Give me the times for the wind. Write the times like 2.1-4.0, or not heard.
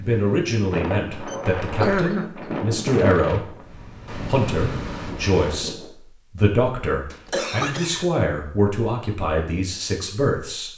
0.0-5.9.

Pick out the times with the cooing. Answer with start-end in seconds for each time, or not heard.
not heard.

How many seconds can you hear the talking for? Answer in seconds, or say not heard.
11 s.